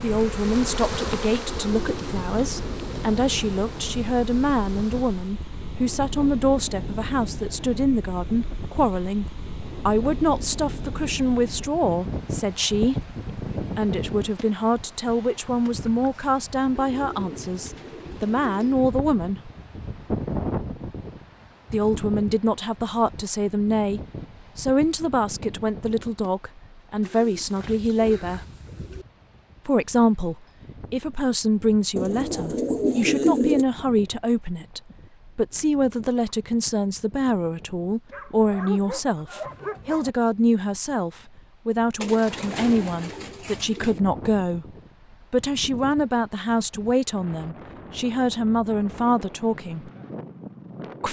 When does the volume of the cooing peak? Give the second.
33 s.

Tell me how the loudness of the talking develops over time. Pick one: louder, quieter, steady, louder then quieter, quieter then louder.
steady.